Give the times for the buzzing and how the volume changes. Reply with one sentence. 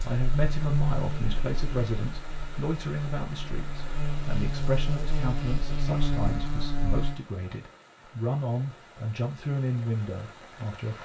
You can hear the buzzing from 0.0 to 7.2 s, getting quieter then louder.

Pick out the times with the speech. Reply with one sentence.
You can hear the speech from 0.0 to 10.9 s.